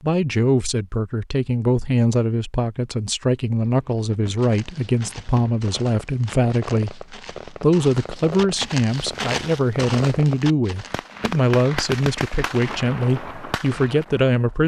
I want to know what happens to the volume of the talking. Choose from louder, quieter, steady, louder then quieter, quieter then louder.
steady.